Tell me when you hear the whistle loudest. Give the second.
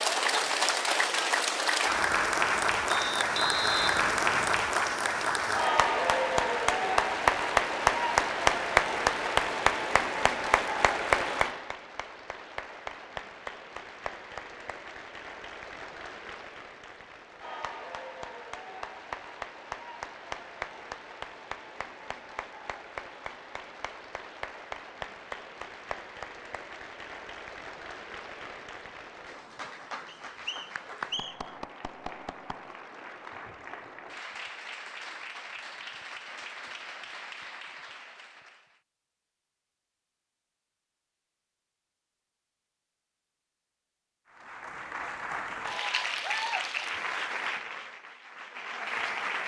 4 s.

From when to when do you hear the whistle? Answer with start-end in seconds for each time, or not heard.
2.9-4.6, 30.1-31.5.